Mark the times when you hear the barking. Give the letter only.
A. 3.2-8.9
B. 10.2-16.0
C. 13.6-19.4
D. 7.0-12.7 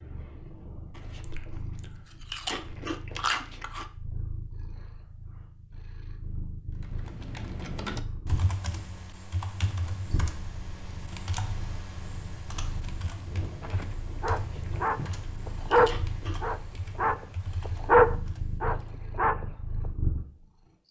C.